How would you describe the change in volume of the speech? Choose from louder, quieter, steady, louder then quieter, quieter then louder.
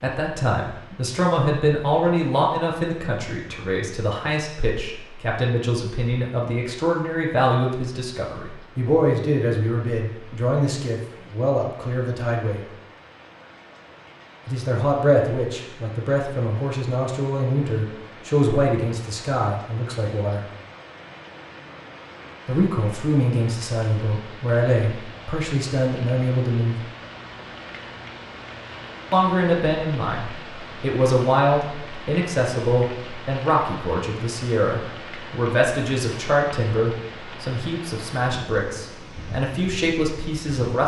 steady.